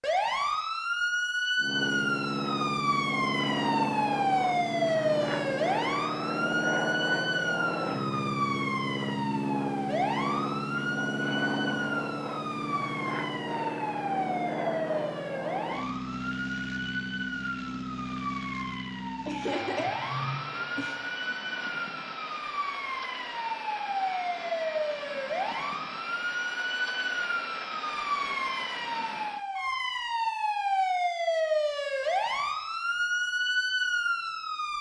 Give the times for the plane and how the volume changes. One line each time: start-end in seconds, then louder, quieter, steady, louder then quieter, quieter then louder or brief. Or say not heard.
1.6-29.4 quieter.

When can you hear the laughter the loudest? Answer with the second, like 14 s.
20 s.